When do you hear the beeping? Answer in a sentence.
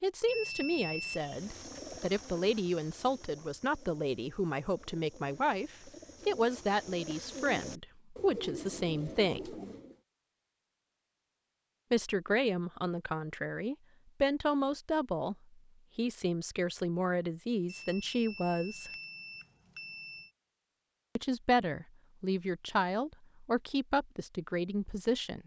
The beeping can be heard from 0.2 to 1.2 s and from 17.6 to 20.3 s.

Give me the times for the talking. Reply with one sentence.
The talking can be heard from 0.0 to 9.6 s, from 11.9 to 15.3 s, from 15.9 to 18.9 s and from 21.1 to 25.4 s.